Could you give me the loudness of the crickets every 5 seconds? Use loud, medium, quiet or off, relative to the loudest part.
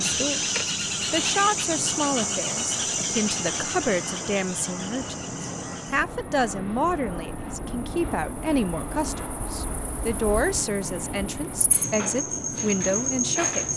loud, quiet, loud.